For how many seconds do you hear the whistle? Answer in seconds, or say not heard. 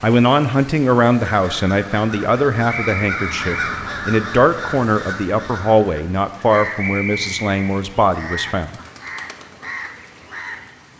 2 s.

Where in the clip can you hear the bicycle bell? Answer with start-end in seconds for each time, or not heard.
not heard.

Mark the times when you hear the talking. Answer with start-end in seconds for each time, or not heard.
0.0-8.8.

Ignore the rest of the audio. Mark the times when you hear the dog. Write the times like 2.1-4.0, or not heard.
not heard.